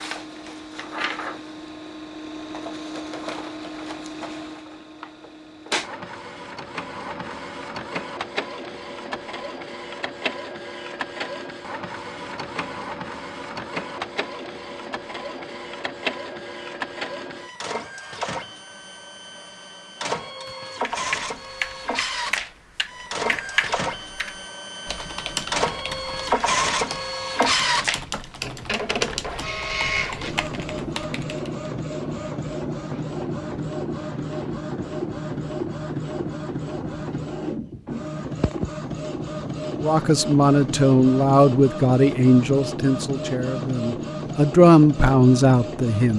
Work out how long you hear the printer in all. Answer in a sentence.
You can hear the printer for 46 seconds altogether.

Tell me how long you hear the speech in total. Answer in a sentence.
You can hear the speech for 6 seconds altogether.